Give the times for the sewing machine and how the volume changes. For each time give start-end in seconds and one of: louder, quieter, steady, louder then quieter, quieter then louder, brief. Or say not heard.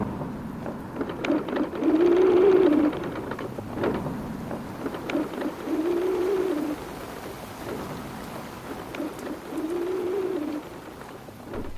0.0-11.7 quieter then louder.